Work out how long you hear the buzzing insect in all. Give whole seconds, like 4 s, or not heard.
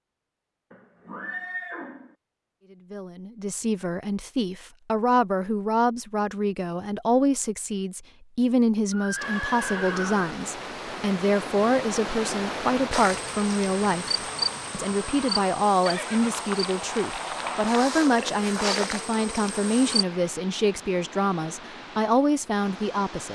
7 s.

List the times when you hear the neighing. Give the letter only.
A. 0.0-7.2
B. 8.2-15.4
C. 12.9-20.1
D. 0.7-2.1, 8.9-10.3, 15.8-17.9
D.